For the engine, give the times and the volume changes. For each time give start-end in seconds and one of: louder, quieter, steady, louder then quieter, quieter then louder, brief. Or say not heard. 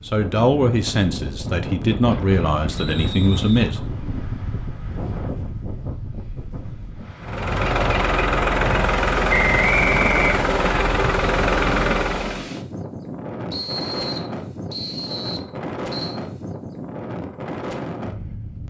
7.2-12.5 steady.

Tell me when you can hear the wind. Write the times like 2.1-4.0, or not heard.
0.0-18.6.